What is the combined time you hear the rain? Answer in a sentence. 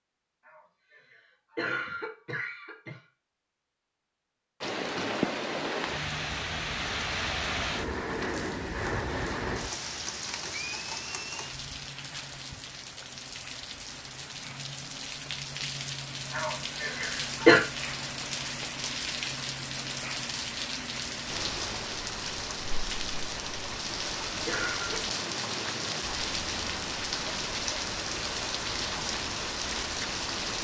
The rain can be heard for 26 seconds in total.